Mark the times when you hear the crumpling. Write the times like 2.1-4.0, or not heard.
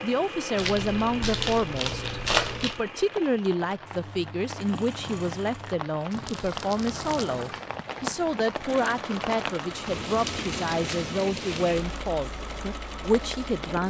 0.6-2.8, 6.1-7.3, 10.2-11.8.